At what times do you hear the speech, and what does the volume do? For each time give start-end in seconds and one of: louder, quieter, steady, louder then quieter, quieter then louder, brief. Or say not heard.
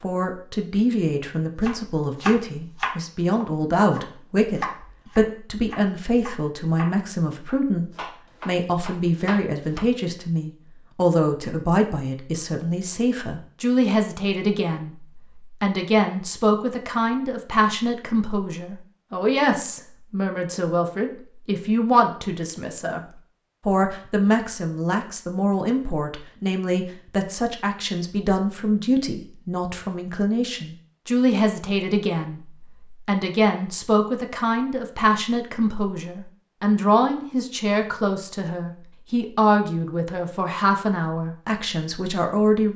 0.0-42.7 steady.